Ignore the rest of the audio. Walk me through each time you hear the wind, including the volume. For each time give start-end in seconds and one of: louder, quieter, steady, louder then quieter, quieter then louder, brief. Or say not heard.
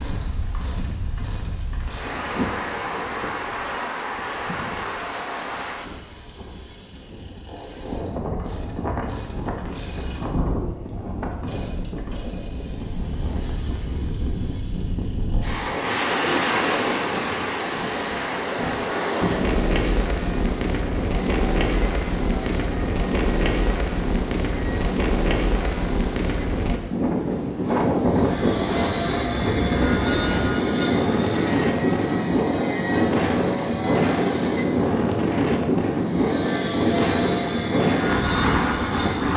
0.0-39.3 louder.